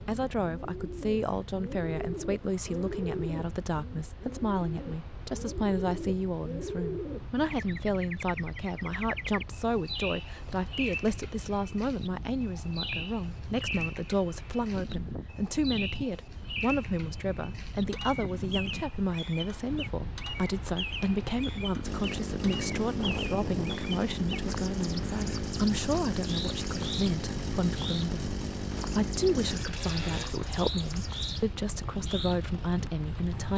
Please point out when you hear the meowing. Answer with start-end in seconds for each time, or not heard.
not heard.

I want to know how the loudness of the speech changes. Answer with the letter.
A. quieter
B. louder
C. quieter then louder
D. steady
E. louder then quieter
D.